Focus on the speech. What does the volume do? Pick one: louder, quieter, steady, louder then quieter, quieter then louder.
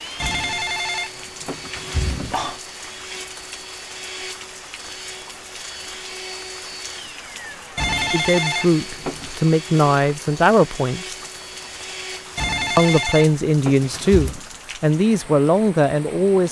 steady.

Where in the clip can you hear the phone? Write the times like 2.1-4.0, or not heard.
0.1-2.6, 7.8-9.4, 12.3-14.4.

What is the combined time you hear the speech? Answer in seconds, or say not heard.
7 s.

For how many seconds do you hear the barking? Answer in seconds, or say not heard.
not heard.